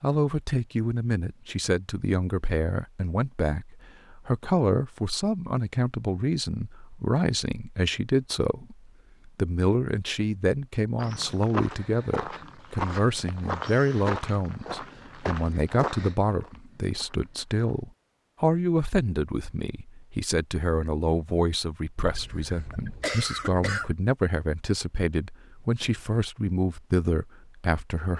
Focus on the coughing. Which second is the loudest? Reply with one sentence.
The loudest moment of the coughing is at 23 seconds.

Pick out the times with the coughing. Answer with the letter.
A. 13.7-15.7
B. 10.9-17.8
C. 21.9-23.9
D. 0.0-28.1
C.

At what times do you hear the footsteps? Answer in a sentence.
The footsteps can be heard from 10.9 to 17.8 s.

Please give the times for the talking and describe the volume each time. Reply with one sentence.
You can hear the talking from 0.0 to 28.1 s, at a steady volume.